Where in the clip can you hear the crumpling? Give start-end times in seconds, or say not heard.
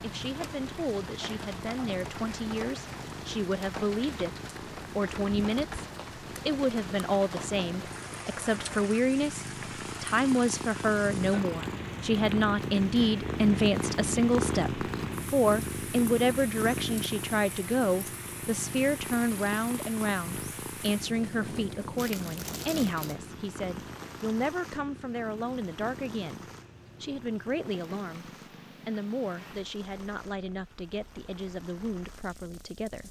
21.9-23.4.